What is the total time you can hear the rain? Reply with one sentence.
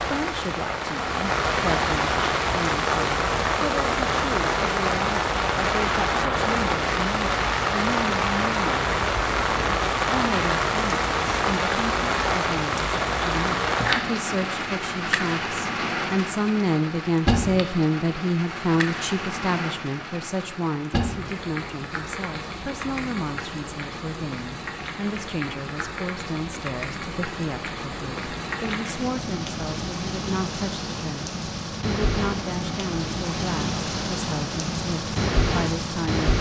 You can hear the rain for 36 seconds altogether.